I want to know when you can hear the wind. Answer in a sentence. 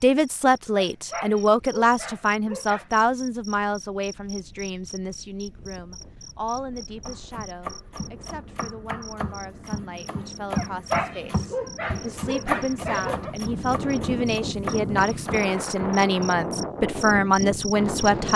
You can hear the wind from 5.5 to 18.3 s.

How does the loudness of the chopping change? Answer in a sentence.
The loudness of the chopping goes up, then down.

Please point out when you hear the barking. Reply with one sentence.
You can hear the barking from 0.8 to 2.9 s and from 10.5 to 13.3 s.